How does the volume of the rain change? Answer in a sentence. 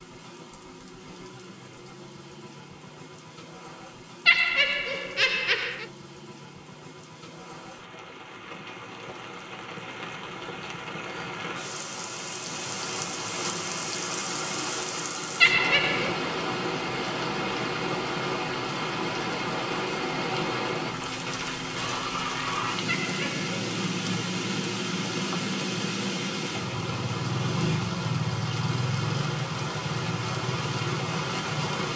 The loudness of the rain goes up.